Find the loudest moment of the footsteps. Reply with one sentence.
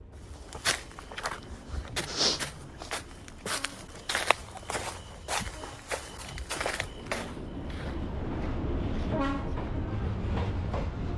The volume of the footsteps peaks at 2 seconds.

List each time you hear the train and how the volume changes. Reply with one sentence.
You can hear the train from 0.0 to 11.1 s, getting louder.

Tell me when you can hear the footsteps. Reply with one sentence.
You can hear the footsteps from 0.1 to 9.9 s.